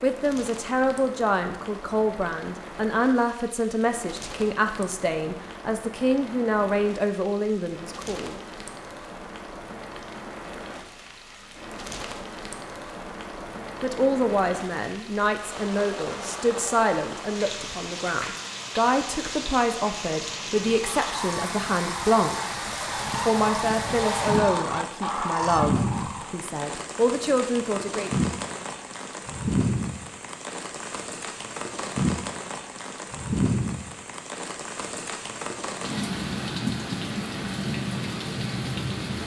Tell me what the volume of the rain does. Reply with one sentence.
The loudness of the rain goes up.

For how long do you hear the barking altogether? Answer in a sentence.
The barking can't be heard in this clip.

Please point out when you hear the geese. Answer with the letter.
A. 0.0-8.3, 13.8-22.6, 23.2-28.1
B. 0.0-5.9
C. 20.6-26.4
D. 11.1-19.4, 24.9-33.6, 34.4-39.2
C.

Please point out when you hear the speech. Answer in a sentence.
You can hear the speech from 0.0 to 8.3 s, from 13.8 to 22.6 s and from 23.2 to 28.1 s.